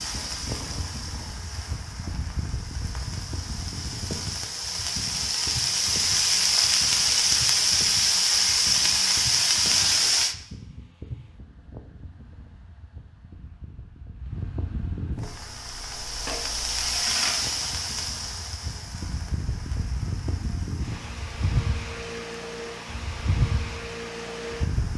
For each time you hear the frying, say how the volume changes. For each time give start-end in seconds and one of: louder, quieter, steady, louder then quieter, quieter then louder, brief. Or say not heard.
0.0-10.3 louder
15.2-24.9 quieter.